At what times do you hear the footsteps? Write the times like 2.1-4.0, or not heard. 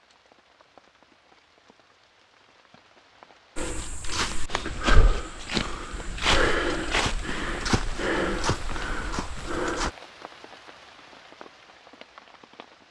3.5-9.9.